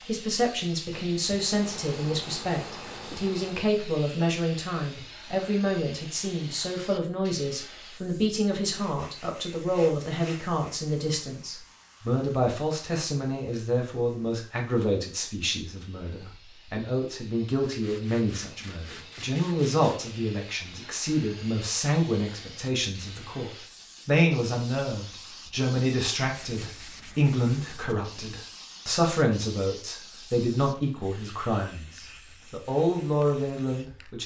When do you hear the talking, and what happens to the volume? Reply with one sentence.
The talking can be heard from 0.1 to 34.2 s, at a steady volume.